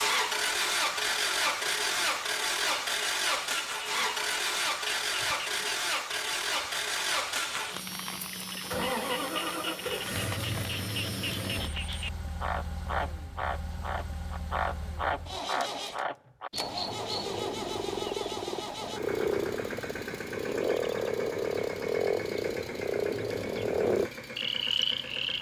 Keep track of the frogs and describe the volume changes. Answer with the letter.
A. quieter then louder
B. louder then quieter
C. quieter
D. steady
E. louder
E.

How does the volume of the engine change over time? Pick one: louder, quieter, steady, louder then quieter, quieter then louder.
quieter.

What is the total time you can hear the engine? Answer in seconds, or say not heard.
25 s.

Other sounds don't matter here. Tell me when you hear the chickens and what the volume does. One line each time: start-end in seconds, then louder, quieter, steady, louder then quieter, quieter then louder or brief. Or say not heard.
not heard.